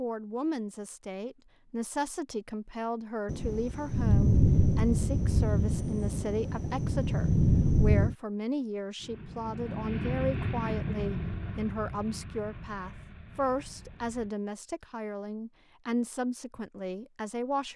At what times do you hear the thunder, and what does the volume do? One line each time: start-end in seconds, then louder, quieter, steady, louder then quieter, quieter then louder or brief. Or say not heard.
3.2-8.2 quieter then louder.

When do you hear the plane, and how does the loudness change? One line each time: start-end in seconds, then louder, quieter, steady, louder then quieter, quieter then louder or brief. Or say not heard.
8.9-14.3 quieter.